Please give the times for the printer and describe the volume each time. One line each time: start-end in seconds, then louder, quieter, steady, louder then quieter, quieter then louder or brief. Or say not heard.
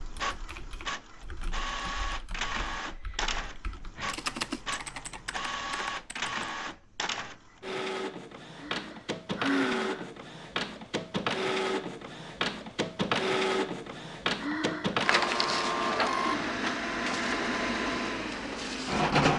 0.0-19.3 louder.